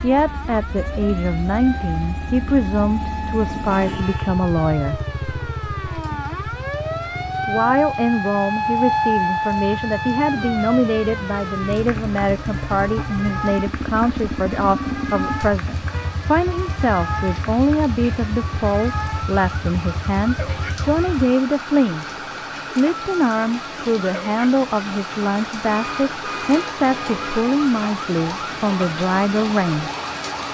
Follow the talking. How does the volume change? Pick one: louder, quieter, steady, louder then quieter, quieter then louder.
steady.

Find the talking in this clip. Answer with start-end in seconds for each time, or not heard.
0.0-5.0, 7.5-29.9.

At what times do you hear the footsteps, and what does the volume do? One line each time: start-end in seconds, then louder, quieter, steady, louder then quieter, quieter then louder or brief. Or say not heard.
not heard.